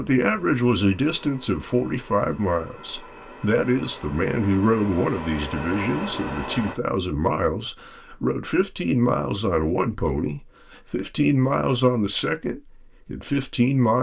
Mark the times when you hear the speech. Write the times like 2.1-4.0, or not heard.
0.0-13.9.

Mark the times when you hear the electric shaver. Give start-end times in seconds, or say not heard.
not heard.